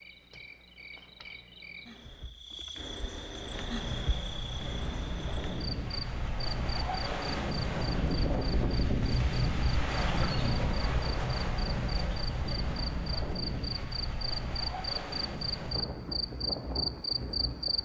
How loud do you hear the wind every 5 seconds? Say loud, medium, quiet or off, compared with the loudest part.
medium, loud, loud, medium.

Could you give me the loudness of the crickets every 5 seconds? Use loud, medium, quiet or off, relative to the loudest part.
medium, medium, medium, loud.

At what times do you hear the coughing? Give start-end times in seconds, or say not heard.
not heard.